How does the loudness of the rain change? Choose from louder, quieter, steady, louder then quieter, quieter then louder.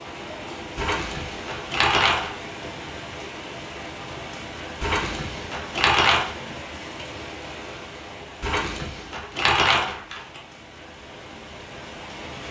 quieter.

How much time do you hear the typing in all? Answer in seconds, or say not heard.
5 s.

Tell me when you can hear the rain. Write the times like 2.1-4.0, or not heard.
0.0-12.4.